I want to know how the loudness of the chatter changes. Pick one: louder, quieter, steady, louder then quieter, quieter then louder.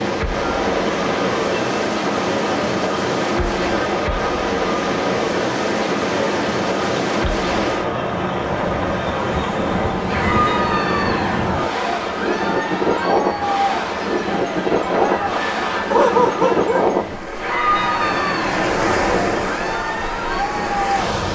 steady.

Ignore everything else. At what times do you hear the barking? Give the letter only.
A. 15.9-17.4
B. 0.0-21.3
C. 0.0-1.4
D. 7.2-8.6
A.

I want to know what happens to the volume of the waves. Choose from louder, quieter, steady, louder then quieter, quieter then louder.
steady.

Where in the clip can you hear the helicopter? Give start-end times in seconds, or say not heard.
not heard.